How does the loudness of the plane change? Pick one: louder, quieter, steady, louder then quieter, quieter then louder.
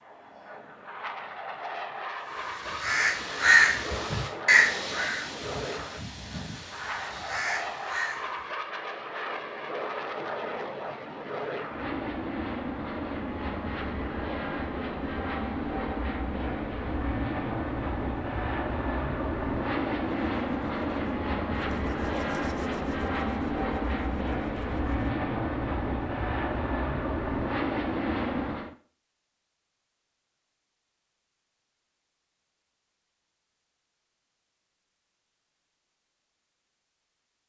louder.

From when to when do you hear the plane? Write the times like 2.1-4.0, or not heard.
0.0-28.8.